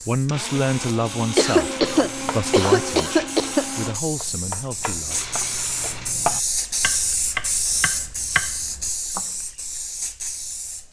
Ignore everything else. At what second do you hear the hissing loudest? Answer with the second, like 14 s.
7 s.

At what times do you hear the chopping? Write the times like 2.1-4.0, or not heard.
1.8-9.2.